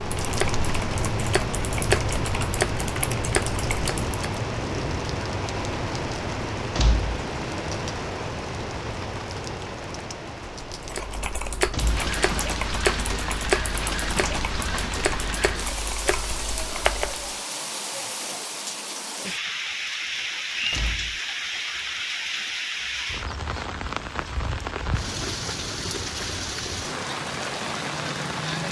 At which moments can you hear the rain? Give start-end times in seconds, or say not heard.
0.0-28.6.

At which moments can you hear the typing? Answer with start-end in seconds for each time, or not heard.
0.0-4.2, 10.8-17.3.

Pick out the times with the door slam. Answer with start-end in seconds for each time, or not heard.
6.8-7.2, 11.7-12.1, 20.7-21.2.